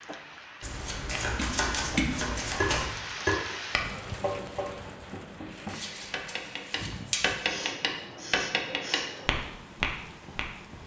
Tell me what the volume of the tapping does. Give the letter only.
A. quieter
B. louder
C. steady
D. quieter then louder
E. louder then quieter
D.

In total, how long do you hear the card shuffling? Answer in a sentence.
The card shuffling can be heard for 4 seconds in total.